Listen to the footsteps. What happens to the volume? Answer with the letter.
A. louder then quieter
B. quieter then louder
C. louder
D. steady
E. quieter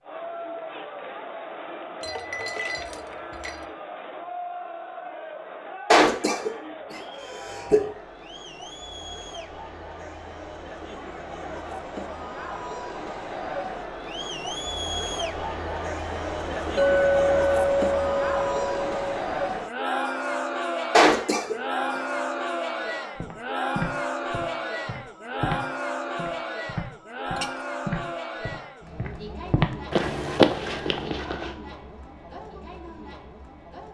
C.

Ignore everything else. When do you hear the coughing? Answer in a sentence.
You can hear the coughing from 5.9 to 7.8 s and from 20.9 to 21.6 s.